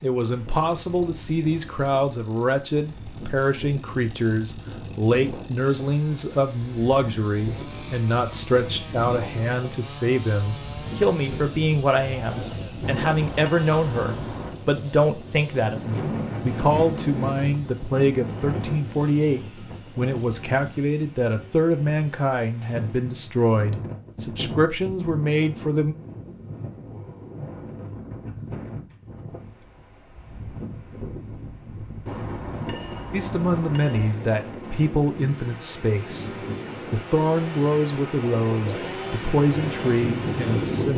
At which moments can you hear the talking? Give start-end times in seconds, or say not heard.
0.0-25.9, 33.1-36.3, 36.9-40.9.